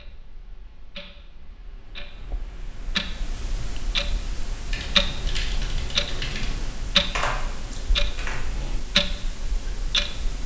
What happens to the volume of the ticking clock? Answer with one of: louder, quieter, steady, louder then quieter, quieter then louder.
louder.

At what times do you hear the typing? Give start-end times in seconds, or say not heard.
4.7-8.7.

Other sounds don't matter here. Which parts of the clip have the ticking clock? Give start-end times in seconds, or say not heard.
0.0-10.4.